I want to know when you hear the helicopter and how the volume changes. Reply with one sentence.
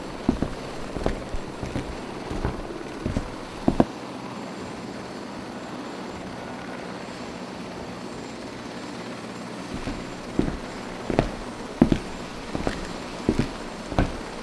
You can hear the helicopter from 0.0 to 14.3 s, at a steady volume.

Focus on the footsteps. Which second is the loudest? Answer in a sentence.
The volume of the footsteps peaks at 12 seconds.